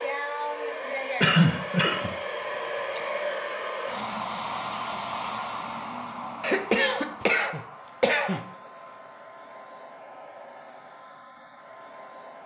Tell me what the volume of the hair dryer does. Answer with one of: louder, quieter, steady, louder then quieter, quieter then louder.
quieter.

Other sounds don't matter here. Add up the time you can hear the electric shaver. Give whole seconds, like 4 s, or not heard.
not heard.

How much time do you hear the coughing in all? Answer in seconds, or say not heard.
3 s.